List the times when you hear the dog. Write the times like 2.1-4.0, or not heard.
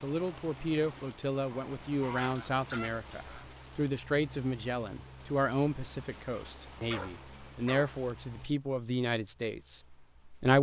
6.9-8.0.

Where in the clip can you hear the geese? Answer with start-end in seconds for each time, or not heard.
2.0-3.5.